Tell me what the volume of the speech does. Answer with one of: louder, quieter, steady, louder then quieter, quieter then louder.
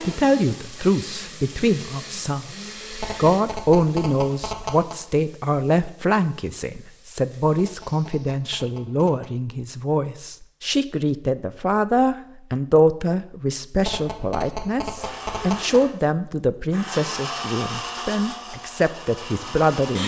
steady.